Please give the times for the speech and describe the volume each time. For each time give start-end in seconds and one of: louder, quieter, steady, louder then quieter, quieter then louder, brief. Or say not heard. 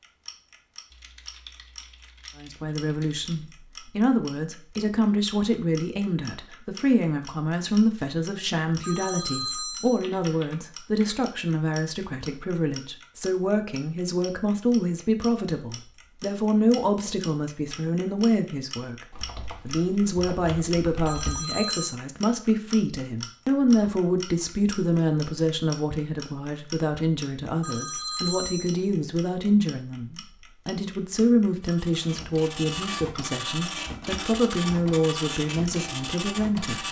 2.4-19.1 steady
19.6-36.8 steady.